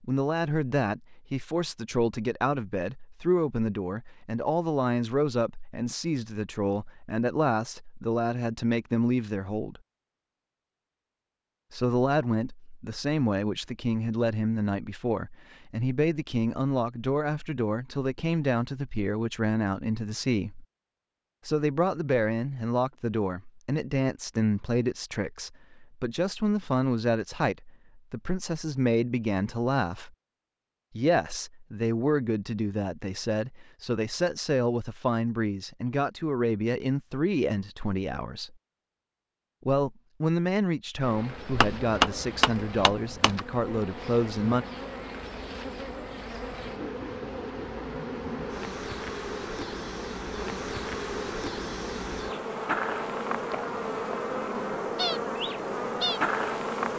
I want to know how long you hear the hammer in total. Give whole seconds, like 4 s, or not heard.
2 s.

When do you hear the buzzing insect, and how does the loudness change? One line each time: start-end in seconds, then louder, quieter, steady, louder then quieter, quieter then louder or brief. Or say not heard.
41.0-56.9 louder.